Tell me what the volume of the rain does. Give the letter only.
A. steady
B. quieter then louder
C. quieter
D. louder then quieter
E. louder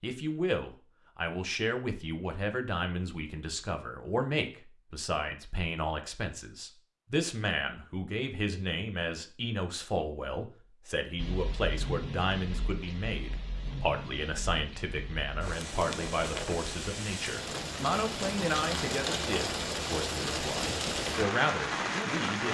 E.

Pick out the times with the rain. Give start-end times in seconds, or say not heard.
11.2-22.5.